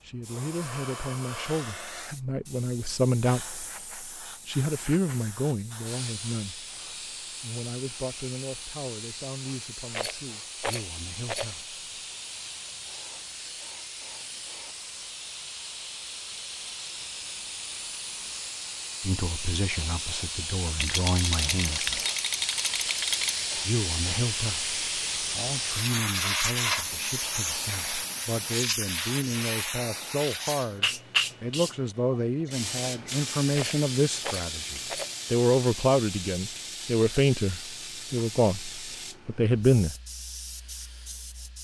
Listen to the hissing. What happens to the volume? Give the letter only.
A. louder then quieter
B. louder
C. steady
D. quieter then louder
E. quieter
A.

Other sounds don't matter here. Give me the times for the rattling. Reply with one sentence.
The rattling can be heard from 9.9 to 11.6 s, from 20.8 to 23.4 s and from 33.5 to 35.1 s.